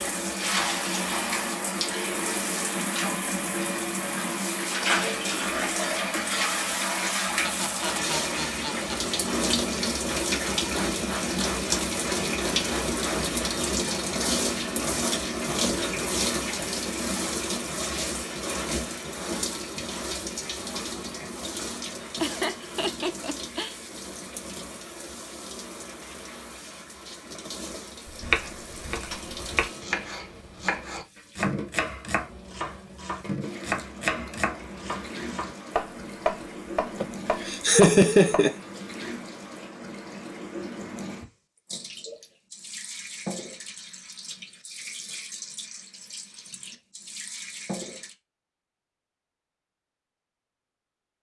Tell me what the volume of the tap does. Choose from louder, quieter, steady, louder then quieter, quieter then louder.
quieter.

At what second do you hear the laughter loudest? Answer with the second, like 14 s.
38 s.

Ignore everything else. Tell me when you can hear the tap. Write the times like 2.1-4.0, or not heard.
0.0-48.1.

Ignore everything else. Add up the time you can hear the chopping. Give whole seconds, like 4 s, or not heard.
10 s.